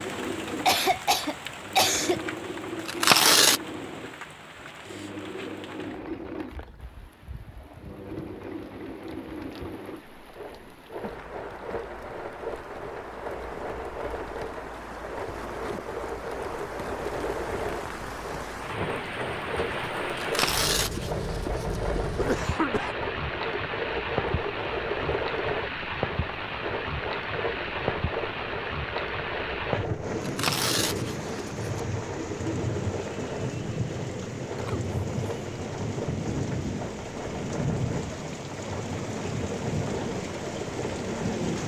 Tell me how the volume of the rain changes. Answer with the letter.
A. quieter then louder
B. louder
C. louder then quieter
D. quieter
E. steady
B.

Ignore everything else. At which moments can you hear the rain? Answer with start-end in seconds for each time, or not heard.
0.0-41.6.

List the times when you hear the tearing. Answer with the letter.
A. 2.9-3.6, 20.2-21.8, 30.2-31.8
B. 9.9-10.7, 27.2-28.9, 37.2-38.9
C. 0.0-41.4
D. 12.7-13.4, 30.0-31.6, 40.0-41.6
A.